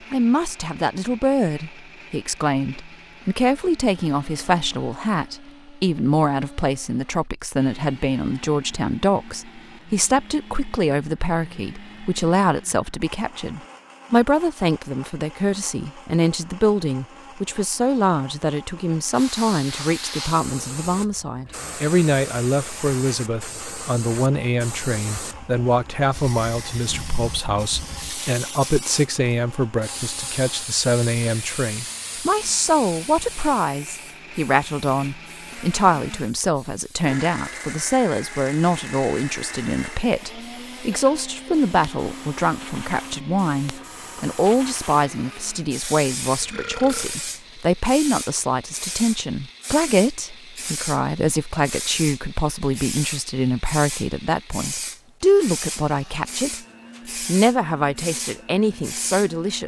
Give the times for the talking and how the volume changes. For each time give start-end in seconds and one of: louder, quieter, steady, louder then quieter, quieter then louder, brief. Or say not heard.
0.1-56.5 steady
57.2-59.6 brief.